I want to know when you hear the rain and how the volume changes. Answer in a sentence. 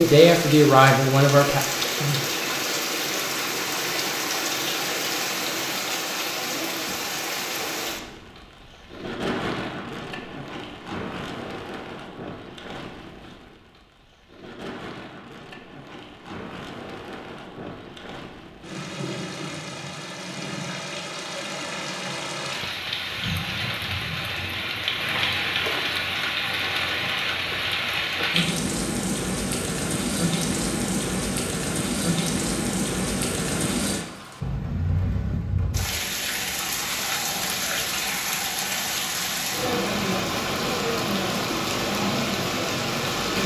You can hear the rain from 0.0 to 43.4 s, getting quieter then louder.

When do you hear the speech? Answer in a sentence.
The speech can be heard from 0.0 to 1.6 s.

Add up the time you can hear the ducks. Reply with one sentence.
The ducks can't be heard in this clip.